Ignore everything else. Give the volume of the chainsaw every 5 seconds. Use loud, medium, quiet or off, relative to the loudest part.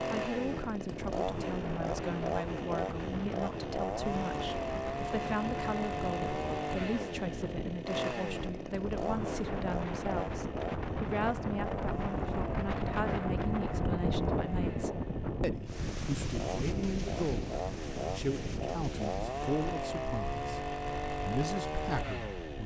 loud, loud, medium, loud, loud.